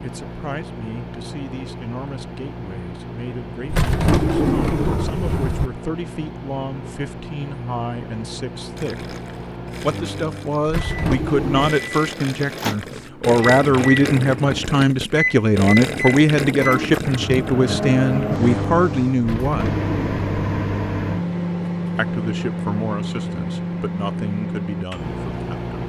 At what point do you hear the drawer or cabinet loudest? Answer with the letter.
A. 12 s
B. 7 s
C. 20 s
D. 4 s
D.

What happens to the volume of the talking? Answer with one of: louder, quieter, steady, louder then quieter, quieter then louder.
louder then quieter.